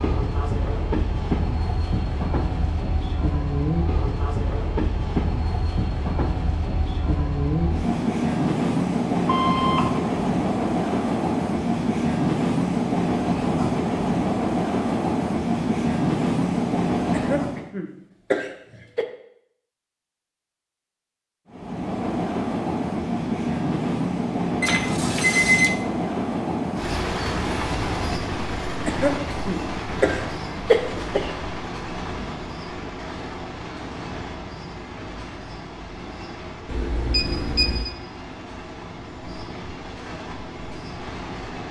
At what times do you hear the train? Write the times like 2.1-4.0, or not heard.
0.0-17.7, 21.5-41.6.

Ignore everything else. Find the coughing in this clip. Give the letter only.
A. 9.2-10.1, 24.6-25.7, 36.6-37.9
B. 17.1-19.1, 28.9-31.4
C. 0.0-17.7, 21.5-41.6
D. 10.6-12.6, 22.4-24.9
B.